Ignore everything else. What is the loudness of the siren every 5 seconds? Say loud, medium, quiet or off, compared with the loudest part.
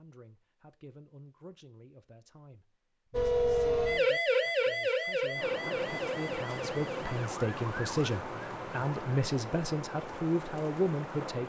loud, medium, off.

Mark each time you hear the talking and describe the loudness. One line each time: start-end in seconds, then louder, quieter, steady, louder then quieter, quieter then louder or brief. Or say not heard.
0.0-11.4 louder.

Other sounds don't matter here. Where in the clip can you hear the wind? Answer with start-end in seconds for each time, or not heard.
5.3-11.4.